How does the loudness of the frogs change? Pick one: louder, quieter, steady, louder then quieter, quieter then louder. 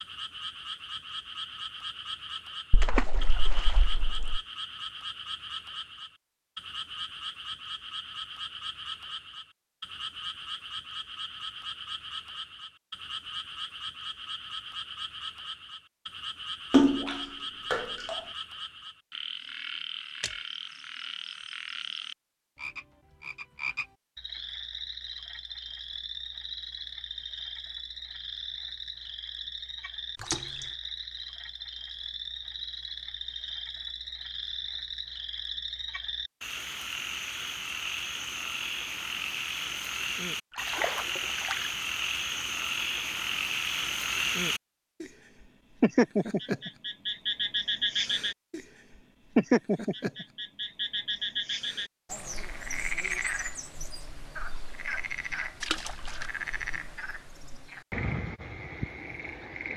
louder.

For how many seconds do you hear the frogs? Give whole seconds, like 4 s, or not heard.
60 s.